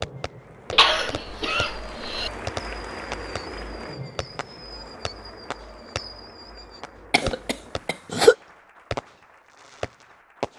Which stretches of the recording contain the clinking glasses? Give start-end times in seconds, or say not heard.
not heard.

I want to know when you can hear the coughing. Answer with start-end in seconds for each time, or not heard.
0.7-2.3, 7.1-8.3.